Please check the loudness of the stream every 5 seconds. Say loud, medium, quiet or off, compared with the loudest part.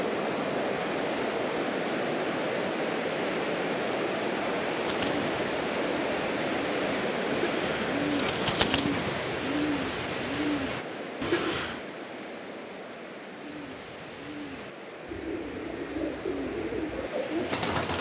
loud, loud, medium, medium.